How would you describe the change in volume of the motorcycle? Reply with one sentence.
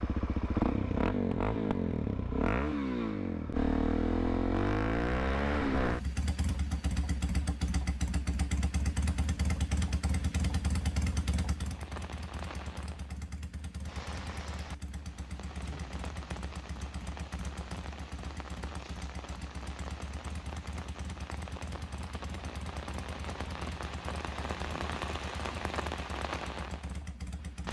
The loudness of the motorcycle goes down.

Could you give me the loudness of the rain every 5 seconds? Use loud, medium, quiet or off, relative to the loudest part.
off, off, medium, medium, loud, loud.